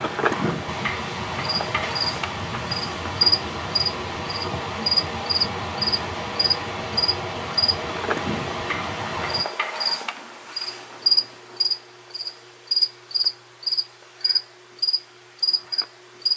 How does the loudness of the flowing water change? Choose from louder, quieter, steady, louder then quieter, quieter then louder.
steady.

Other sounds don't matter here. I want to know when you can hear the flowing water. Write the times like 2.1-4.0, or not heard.
0.0-9.4.